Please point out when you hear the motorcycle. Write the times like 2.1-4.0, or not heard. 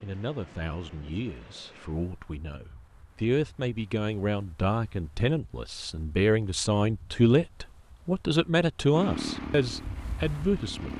8.9-10.9.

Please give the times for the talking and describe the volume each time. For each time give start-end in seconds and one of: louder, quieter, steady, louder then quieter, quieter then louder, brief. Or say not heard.
0.0-10.9 louder.